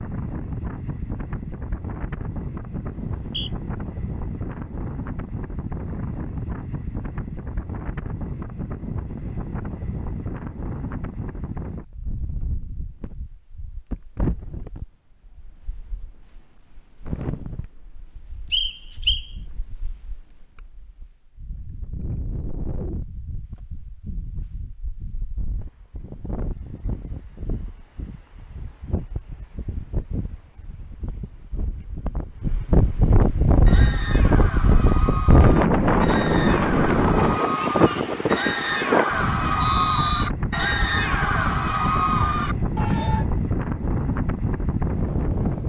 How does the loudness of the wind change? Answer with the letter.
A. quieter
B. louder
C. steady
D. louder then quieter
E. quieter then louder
E.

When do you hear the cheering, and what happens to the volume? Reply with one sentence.
The cheering can be heard from 33.6 to 43.2 s, getting louder.